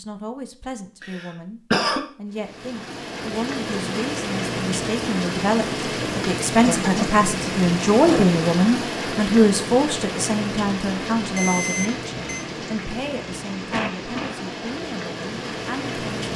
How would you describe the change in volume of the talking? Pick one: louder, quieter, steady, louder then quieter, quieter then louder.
louder then quieter.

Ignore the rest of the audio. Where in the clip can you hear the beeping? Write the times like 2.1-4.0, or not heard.
11.3-12.4.